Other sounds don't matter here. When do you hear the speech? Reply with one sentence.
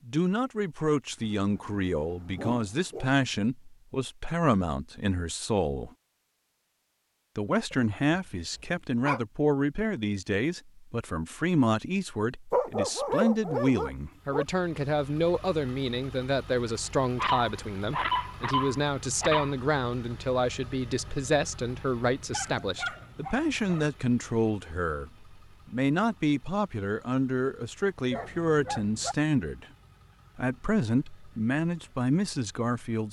You can hear the speech from 0.1 to 5.9 s, from 7.3 to 29.6 s and from 30.4 to 33.0 s.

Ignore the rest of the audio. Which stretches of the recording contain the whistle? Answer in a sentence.
You can't hear the whistle here.